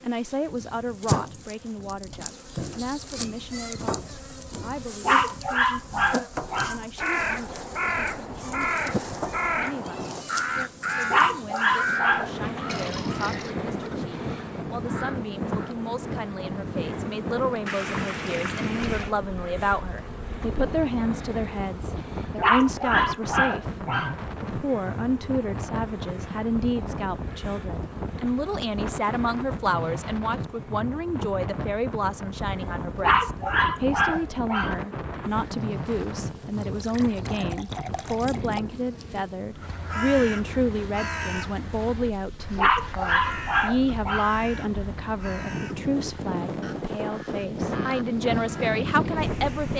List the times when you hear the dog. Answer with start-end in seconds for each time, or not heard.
5.0-6.8, 11.1-12.3, 22.4-24.1, 33.0-34.8, 42.5-44.3.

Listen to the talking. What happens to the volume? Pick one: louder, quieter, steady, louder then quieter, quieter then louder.
louder.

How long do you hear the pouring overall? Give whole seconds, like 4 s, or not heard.
4 s.